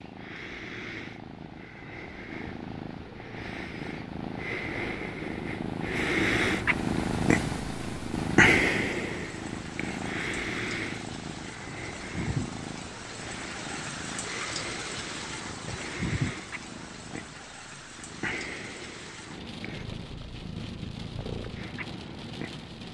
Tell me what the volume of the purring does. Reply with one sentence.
The loudness of the purring goes up, then down.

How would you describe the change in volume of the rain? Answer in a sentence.
The volume of the rain goes up, then down.